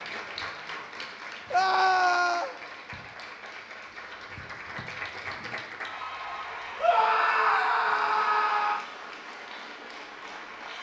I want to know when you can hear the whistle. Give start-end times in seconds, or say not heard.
not heard.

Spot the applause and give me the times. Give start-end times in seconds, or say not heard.
0.0-10.7.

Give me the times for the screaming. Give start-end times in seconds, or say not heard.
1.5-2.5, 6.8-8.8.